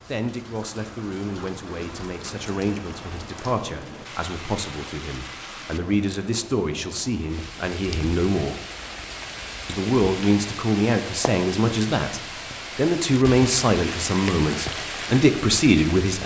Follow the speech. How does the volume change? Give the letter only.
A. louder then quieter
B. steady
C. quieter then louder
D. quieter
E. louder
E.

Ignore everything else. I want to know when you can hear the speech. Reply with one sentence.
You can hear the speech from 0.1 to 8.6 s and from 9.7 to 16.2 s.